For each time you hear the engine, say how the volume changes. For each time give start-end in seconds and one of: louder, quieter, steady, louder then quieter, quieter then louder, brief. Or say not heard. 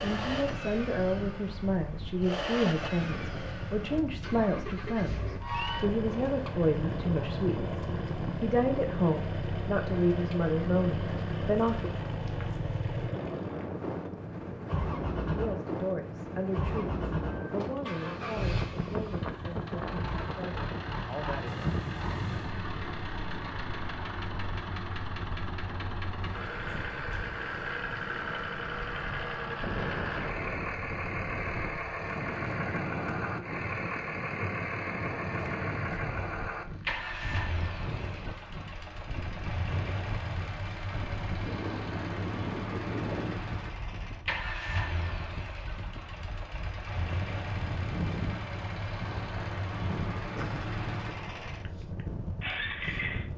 0.0-53.2 steady.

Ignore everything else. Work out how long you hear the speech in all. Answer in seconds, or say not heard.
18 s.